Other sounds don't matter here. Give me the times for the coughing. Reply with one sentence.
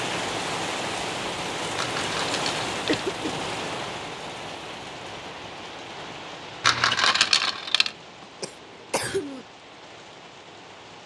The coughing can be heard from 2.9 to 3.5 s and from 8.4 to 9.4 s.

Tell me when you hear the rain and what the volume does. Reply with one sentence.
The rain can be heard from 0.0 to 11.0 s, getting quieter.